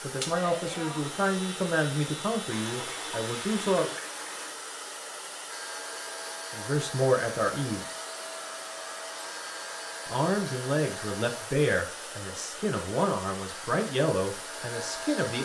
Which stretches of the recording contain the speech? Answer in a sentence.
You can hear the speech from 0.0 to 4.0 s, from 6.5 to 7.8 s and from 10.1 to 15.3 s.